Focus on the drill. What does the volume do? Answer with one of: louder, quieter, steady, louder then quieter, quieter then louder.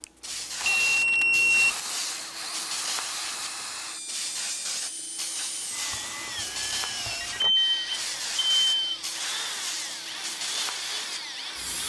steady.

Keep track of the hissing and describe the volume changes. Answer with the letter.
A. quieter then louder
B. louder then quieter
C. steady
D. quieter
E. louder
C.